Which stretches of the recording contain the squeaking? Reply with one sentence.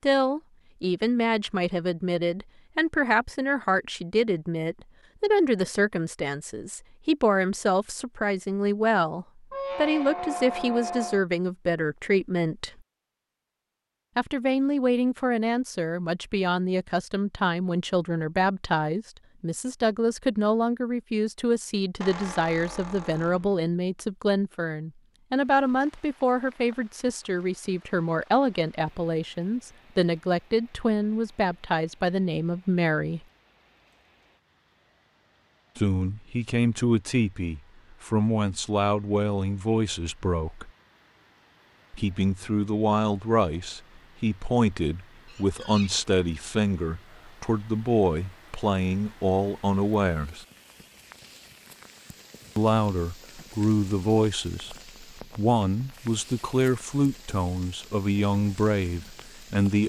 The squeaking can be heard from 9.5 to 11.2 s, from 22.0 to 23.6 s and from 45.2 to 45.9 s.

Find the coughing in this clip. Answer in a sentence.
You can't hear the coughing here.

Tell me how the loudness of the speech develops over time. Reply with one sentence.
The loudness of the speech stays about the same.